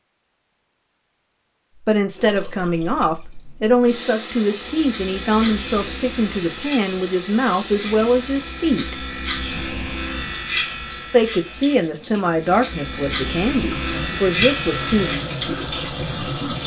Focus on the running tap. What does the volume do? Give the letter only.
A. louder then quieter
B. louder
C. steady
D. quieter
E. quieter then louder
E.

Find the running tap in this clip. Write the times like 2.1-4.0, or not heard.
2.1-16.6.